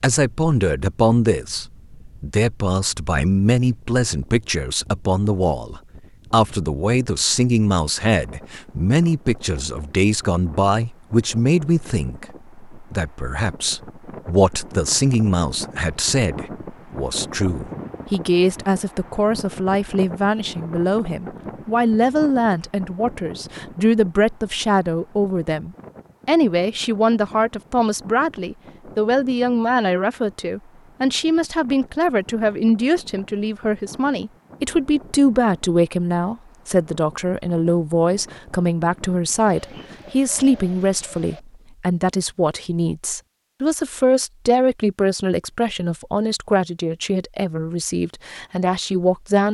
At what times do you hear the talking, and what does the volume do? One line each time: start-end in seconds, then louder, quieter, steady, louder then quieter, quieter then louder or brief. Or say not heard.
0.0-49.4 steady.